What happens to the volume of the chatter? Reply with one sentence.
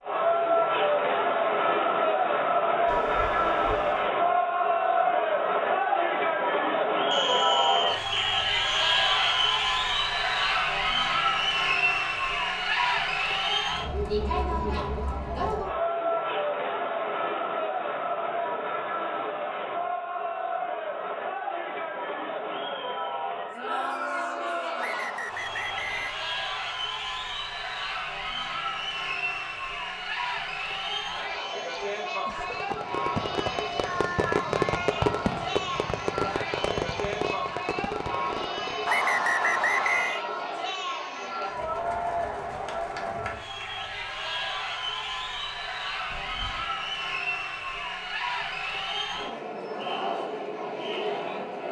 The loudness of the chatter goes down.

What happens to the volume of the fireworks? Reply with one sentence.
The loudness of the fireworks goes up, then down.